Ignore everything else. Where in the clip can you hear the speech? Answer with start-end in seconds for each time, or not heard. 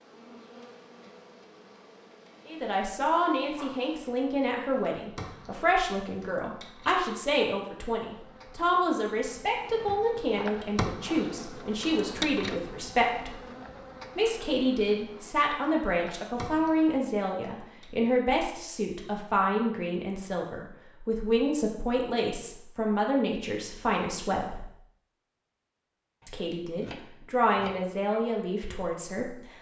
2.5-13.3, 14.2-24.6, 26.2-29.4.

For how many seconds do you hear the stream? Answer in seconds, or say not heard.
not heard.